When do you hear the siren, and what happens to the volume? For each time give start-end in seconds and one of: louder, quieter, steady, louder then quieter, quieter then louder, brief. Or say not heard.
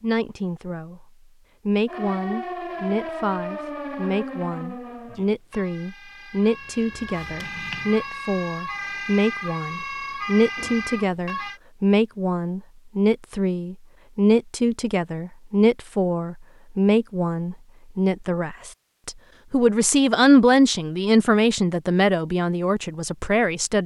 1.9-11.6 quieter then louder.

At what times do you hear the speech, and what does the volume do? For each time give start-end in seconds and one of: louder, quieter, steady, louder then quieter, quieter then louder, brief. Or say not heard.
0.0-1.1 brief
1.6-23.8 louder.